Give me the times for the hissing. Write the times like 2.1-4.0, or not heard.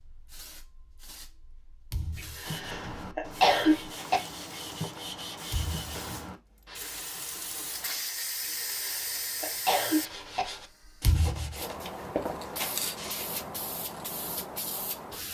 0.0-15.3.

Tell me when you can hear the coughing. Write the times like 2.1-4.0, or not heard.
2.1-4.2, 8.4-10.4.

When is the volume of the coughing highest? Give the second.
4 s.